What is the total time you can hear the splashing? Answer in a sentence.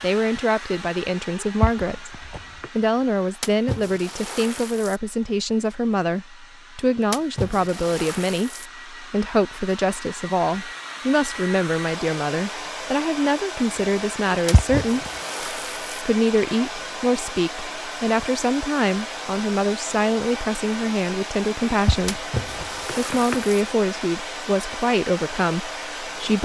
You can hear the splashing for 6 seconds altogether.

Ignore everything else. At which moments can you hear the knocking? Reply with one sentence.
You can hear the knocking from 1.4 to 2.7 s, from 14.3 to 15.1 s and from 21.6 to 23.4 s.